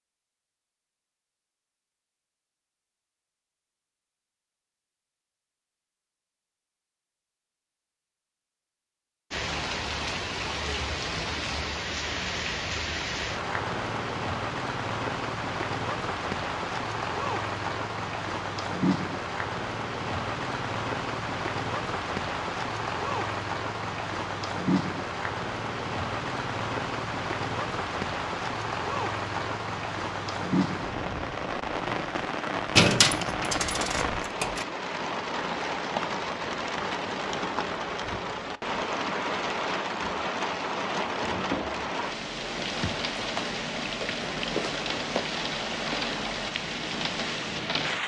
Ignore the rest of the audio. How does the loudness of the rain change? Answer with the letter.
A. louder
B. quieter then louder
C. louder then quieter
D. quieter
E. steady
E.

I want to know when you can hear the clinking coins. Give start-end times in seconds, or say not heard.
32.8-34.6.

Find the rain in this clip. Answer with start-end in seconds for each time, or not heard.
9.3-48.0.